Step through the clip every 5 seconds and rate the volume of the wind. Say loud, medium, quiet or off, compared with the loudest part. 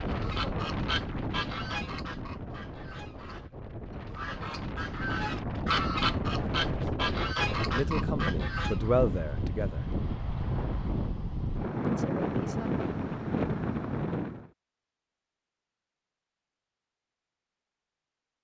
medium, loud, loud, off.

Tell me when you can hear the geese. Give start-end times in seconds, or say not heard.
0.1-8.9.